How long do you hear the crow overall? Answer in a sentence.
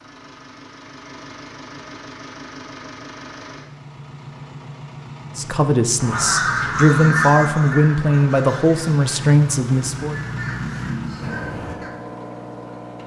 The crow can be heard for 6 seconds in total.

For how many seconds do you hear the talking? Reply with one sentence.
The talking can be heard for 5 seconds in total.